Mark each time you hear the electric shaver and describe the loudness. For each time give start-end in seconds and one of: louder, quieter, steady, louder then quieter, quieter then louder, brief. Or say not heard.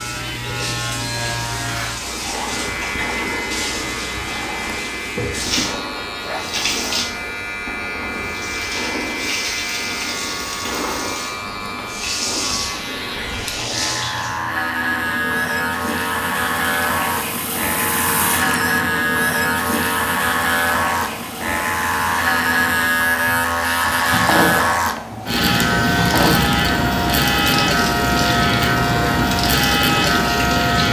0.0-30.8 louder.